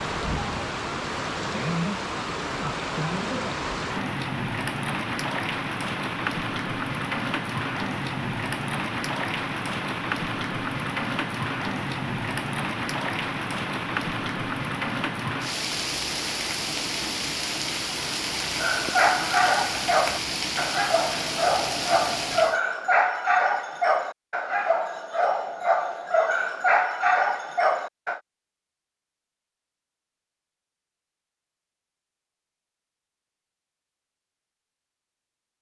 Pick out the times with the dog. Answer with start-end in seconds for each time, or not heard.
18.6-28.2.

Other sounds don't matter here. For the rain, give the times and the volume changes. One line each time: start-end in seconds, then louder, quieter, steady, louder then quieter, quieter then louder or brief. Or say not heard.
0.0-22.6 steady.